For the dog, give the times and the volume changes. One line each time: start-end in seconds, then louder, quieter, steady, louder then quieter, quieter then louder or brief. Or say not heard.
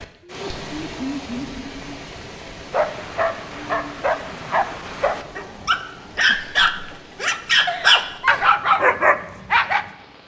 2.7-9.8 louder.